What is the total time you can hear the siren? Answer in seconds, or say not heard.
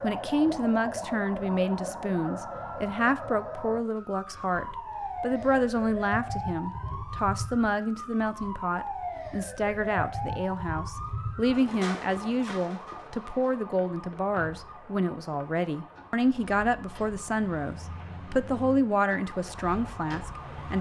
21 s.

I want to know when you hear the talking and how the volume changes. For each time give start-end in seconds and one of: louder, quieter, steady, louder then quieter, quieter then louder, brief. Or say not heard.
0.0-20.7 steady.